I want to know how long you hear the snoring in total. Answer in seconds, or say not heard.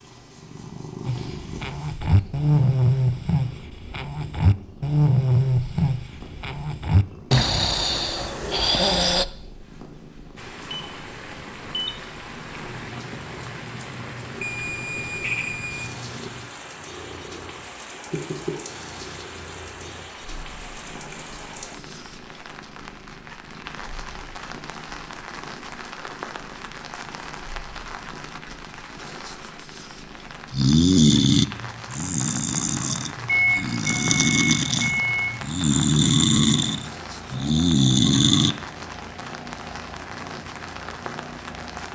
16 s.